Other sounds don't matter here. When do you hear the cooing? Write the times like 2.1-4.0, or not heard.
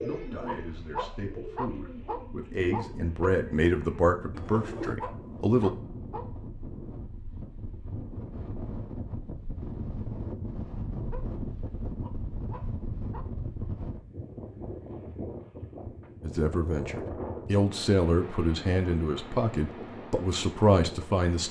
0.0-5.0.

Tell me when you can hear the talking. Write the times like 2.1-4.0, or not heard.
0.0-5.7, 16.2-21.4.